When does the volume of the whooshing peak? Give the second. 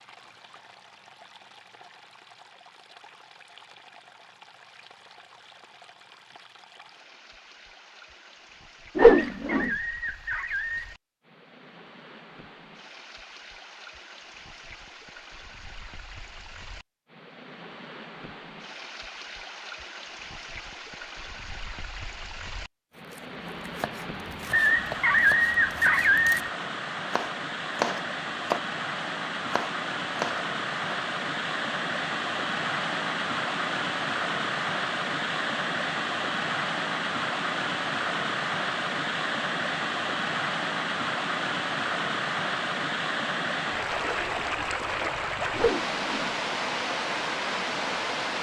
9 s.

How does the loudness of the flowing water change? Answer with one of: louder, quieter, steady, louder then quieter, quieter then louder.
louder.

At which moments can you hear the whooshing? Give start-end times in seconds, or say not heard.
8.9-9.7, 45.5-46.3.